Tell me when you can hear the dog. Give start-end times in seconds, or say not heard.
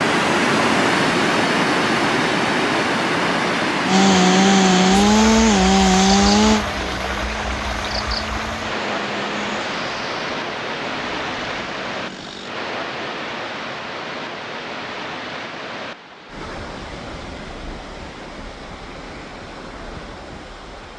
not heard.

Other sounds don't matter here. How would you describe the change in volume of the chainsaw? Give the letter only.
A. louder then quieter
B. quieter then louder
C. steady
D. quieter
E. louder
D.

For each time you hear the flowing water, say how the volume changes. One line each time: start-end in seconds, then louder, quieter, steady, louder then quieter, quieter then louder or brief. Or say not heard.
0.0-20.9 quieter.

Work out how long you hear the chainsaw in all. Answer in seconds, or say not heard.
9 s.